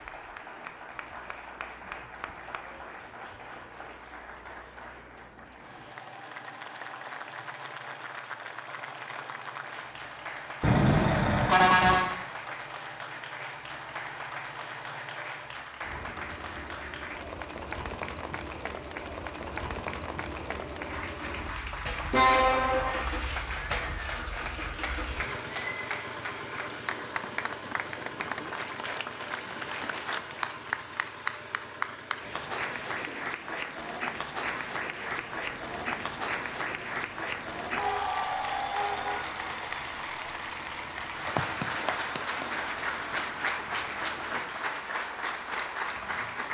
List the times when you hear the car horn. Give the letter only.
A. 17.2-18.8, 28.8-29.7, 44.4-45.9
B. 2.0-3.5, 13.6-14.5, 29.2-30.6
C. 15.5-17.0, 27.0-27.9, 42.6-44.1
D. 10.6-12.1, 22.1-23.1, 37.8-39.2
D.